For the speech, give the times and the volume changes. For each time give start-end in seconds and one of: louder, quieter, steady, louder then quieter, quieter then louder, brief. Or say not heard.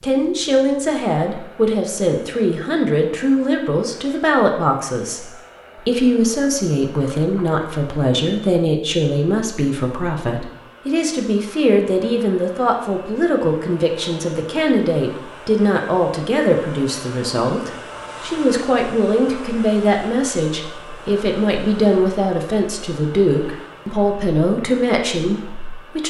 0.0-26.0 steady.